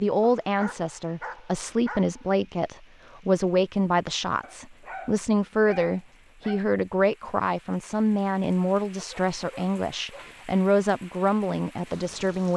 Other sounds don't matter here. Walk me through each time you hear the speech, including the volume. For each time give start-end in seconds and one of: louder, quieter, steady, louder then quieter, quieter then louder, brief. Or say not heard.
0.0-12.5 steady.